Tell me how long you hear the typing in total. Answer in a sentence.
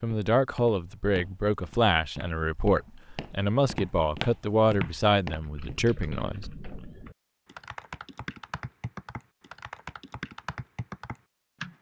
You can hear the typing for 6 seconds altogether.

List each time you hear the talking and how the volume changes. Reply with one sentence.
You can hear the talking from 0.0 to 6.5 s, at a steady volume.